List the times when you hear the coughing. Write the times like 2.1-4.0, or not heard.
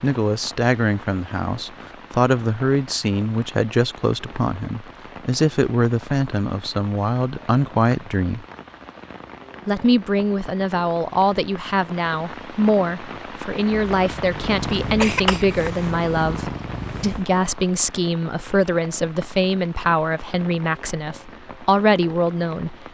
13.7-15.7.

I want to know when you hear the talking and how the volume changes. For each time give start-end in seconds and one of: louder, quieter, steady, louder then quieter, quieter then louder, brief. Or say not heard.
0.0-8.4 steady
9.7-22.9 steady.